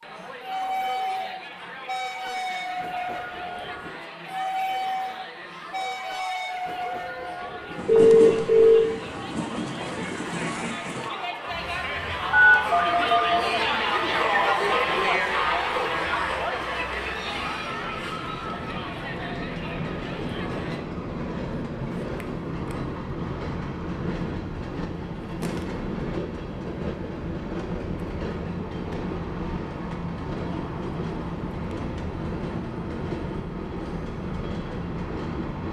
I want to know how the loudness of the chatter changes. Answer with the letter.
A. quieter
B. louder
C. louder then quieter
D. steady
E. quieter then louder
C.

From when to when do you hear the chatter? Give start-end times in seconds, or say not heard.
0.0-20.9.